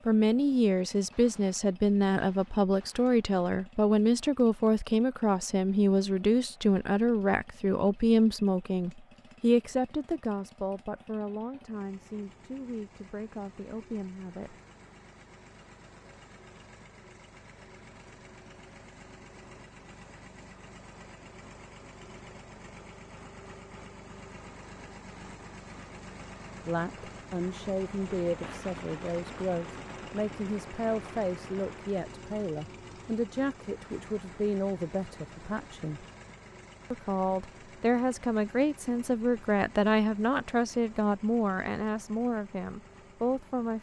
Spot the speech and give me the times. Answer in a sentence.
The speech can be heard from 0.1 to 14.6 s, from 26.6 to 36.0 s and from 36.9 to 43.7 s.